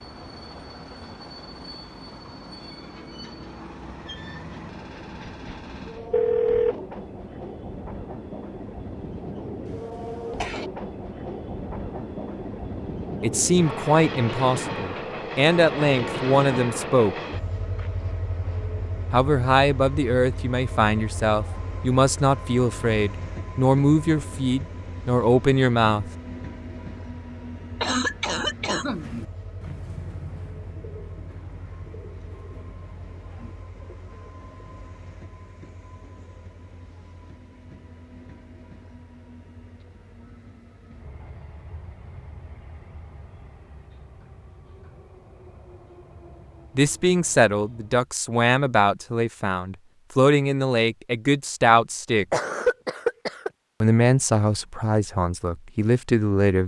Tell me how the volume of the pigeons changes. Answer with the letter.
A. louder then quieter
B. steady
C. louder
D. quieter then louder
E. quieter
E.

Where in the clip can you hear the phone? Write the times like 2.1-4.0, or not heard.
5.0-6.8.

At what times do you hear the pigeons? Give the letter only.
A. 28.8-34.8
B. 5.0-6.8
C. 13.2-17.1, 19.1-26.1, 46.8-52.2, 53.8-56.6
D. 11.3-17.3
A.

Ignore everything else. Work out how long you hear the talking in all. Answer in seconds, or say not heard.
19 s.